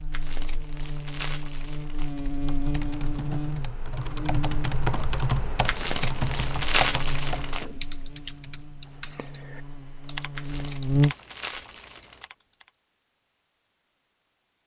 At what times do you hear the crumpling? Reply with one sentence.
You can hear the crumpling from 0.1 to 2.1 s, from 5.7 to 7.7 s and from 10.3 to 12.2 s.